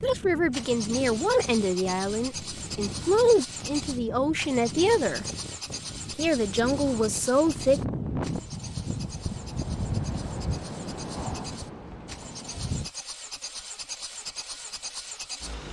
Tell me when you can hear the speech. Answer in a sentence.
The speech can be heard from 0.0 to 5.2 s and from 6.2 to 7.8 s.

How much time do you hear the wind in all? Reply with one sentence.
You can hear the wind for 13 seconds altogether.